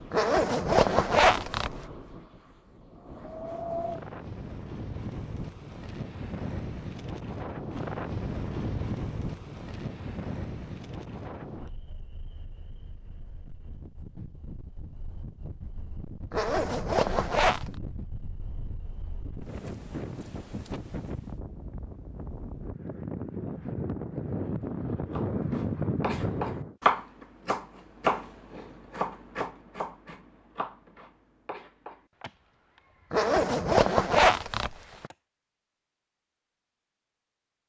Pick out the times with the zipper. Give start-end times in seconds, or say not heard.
0.1-1.8, 16.3-17.6, 33.1-35.1.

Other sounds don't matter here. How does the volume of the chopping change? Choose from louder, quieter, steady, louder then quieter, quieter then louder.
quieter.